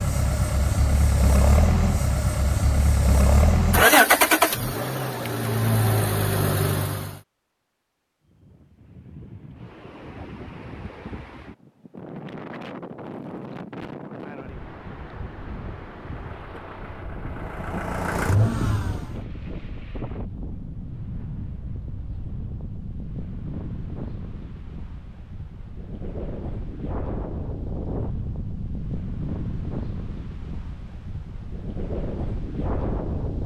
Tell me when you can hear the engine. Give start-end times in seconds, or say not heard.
0.0-7.2, 16.1-19.1.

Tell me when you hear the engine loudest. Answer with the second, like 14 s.
4 s.